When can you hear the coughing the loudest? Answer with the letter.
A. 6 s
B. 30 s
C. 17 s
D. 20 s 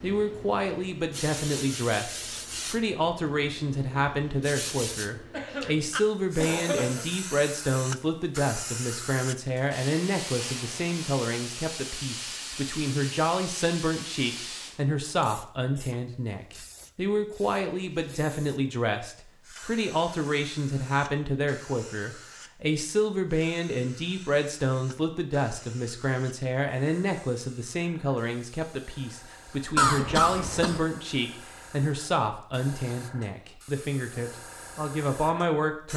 B.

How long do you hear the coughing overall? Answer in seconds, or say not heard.
3 s.